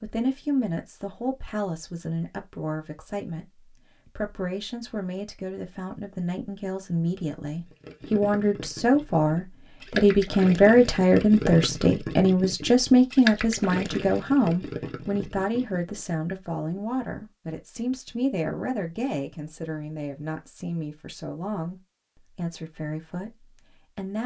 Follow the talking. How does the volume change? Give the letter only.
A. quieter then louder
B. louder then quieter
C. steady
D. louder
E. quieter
B.